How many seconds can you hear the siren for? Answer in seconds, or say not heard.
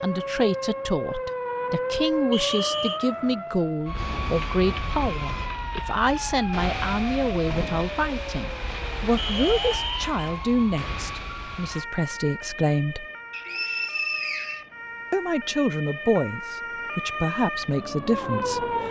19 s.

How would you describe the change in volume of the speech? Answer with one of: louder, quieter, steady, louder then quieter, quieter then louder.
steady.